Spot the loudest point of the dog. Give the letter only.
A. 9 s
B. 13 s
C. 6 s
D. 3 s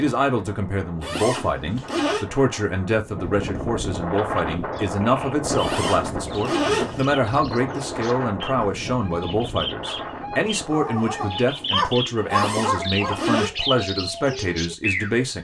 B.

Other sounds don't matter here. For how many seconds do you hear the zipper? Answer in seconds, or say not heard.
4 s.